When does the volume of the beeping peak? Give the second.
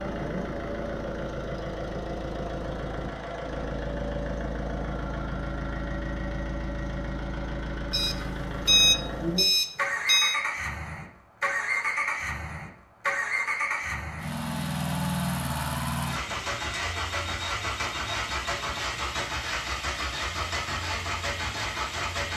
9 s.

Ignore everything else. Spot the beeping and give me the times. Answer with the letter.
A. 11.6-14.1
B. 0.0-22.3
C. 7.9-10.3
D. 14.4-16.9
C.